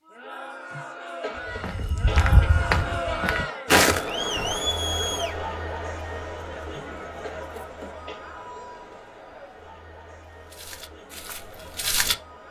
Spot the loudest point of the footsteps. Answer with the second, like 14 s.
4 s.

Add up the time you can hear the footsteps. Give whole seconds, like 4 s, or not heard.
5 s.